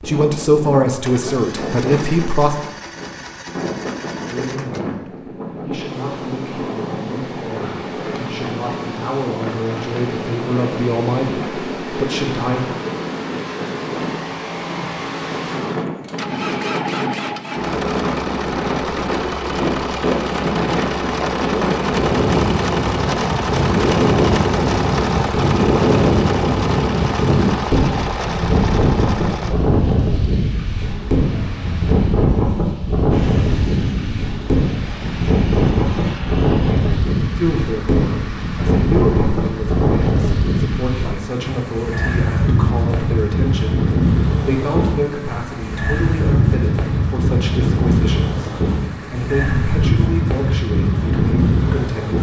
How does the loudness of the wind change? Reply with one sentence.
The loudness of the wind goes up.